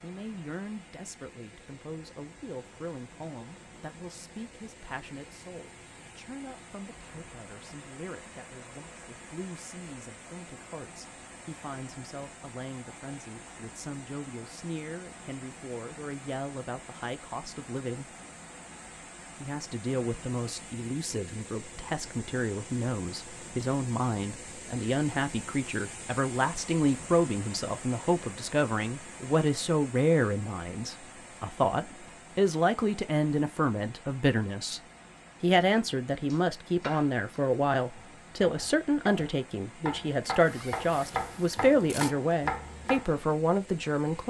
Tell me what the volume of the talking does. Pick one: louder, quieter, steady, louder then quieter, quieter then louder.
louder.